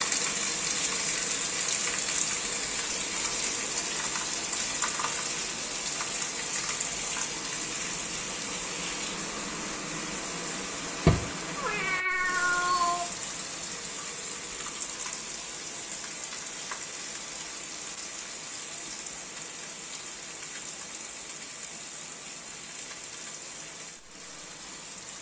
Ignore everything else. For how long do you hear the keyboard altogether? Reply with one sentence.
You can't hear the keyboard here.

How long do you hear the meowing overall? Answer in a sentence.
The meowing can be heard for 2 seconds in total.